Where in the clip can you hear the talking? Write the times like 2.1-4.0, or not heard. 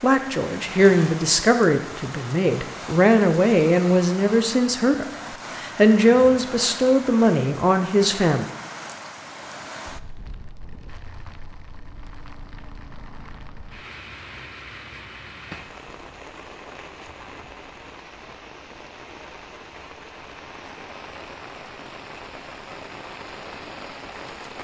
0.0-8.4.